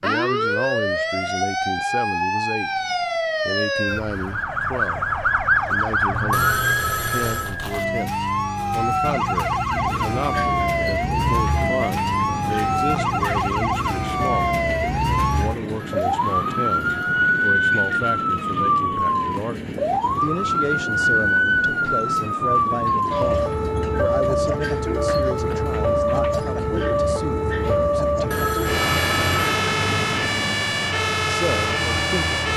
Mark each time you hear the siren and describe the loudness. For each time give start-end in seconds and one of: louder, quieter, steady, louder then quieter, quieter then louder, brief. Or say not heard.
0.0-32.5 steady.